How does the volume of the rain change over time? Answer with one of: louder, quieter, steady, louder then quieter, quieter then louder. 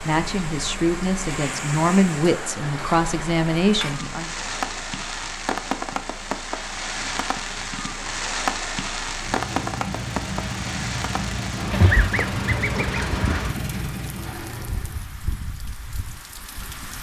louder then quieter.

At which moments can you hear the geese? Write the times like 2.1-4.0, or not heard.
11.7-13.6.